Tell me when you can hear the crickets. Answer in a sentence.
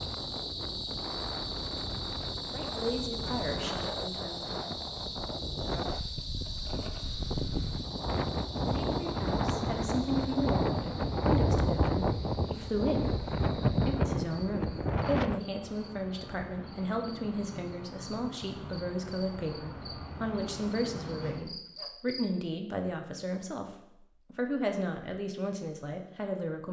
The crickets can be heard from 0.0 to 22.2 s.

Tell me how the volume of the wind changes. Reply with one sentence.
The loudness of the wind goes up.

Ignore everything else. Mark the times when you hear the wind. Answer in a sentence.
You can hear the wind from 0.0 to 15.4 s.